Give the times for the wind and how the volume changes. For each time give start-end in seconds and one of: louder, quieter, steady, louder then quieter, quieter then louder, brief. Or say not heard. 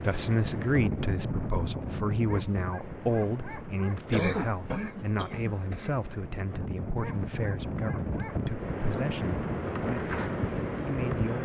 0.0-11.4 quieter then louder.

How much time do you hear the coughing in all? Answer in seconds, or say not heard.
2 s.